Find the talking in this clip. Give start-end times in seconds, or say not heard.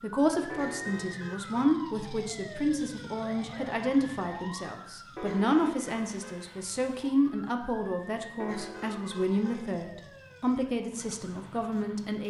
0.0-12.2.